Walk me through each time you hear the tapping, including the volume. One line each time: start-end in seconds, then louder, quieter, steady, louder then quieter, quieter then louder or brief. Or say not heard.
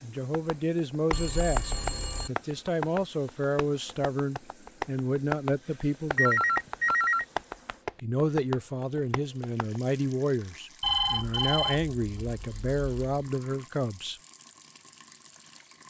0.1-9.8 steady.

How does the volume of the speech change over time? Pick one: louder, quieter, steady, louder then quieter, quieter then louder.
steady.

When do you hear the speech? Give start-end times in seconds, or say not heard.
0.0-6.5, 8.0-14.2.